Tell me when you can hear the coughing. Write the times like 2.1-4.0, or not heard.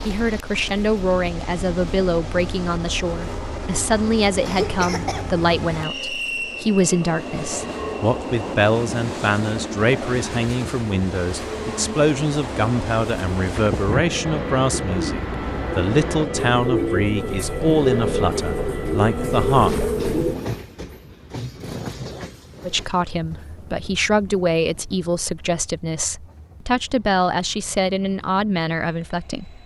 4.5-5.4.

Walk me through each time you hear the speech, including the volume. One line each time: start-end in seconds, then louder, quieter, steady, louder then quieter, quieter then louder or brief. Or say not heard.
0.1-19.7 steady
22.6-29.6 steady.